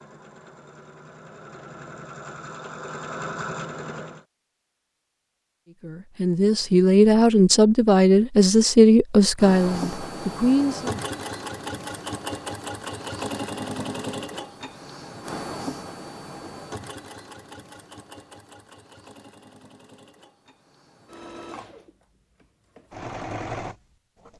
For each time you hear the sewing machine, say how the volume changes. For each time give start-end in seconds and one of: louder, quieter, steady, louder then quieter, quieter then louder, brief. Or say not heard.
0.0-4.2 louder
9.2-24.3 quieter then louder.